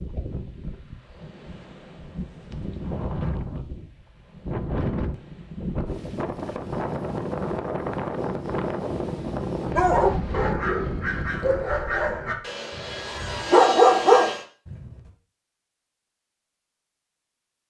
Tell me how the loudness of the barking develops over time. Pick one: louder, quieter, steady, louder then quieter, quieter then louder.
quieter then louder.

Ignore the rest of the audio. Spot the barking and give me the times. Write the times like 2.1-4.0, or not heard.
9.8-14.8.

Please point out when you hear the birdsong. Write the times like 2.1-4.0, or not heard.
not heard.